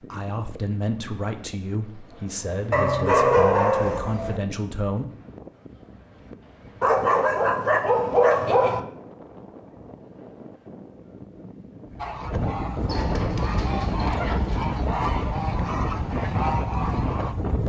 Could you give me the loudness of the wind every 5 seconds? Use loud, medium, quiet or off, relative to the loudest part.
quiet, quiet, loud, loud.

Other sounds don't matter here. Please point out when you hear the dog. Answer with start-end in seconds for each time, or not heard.
2.7-4.4, 6.8-8.8, 12.8-14.7.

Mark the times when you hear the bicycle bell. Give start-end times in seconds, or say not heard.
not heard.